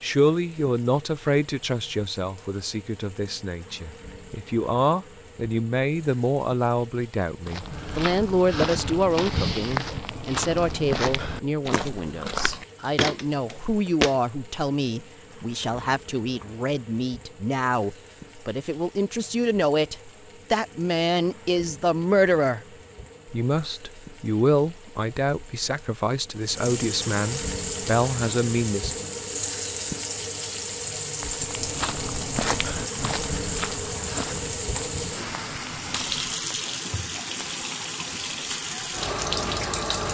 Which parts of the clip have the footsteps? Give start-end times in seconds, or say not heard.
7.5-14.2, 31.1-36.4.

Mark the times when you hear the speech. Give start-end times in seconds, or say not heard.
0.0-22.6, 23.2-29.1.